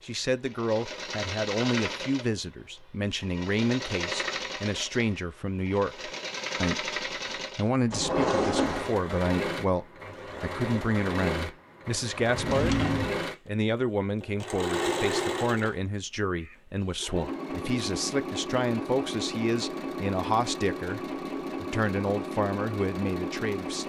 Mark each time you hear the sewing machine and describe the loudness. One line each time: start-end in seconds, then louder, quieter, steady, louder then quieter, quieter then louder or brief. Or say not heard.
0.0-23.8 steady.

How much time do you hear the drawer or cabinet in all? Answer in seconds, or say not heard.
2 s.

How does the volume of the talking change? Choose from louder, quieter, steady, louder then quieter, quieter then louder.
steady.